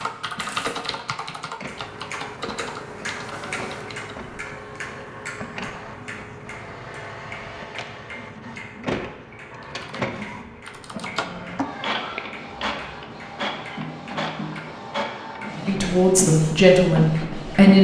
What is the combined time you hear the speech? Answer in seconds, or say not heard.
2 s.